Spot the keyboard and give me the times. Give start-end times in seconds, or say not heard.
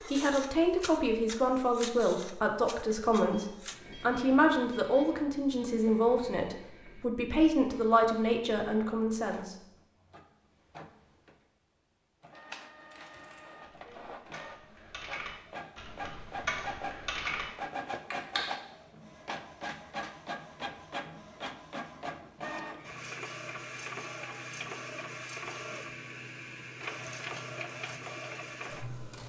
12.8-17.4, 18.1-18.6.